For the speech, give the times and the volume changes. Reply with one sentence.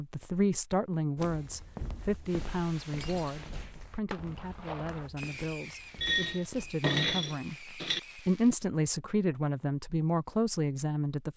The speech can be heard from 0.0 to 11.3 s, getting quieter then louder.